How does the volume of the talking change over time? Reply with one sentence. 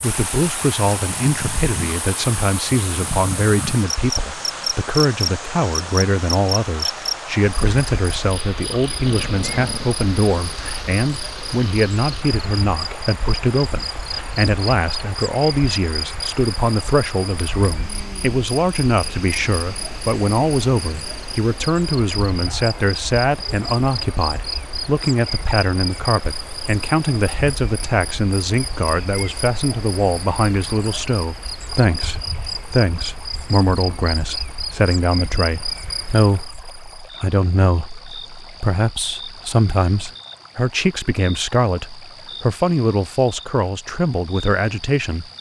The volume of the talking stays about the same.